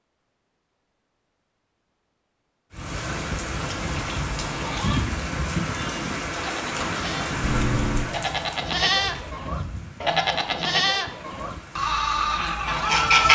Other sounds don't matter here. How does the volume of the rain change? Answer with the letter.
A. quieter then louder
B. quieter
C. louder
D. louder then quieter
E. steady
B.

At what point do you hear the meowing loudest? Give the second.
8 s.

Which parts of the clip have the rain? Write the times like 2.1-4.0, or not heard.
2.7-13.3.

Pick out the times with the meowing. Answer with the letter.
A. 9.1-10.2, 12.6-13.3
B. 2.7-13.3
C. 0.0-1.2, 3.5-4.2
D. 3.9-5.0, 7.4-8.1
D.